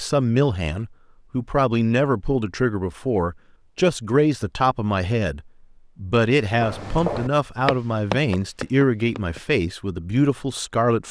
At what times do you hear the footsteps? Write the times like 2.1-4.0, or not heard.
6.5-9.4.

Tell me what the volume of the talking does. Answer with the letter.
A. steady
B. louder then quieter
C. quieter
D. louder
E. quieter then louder
A.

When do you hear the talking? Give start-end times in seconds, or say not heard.
0.0-11.0.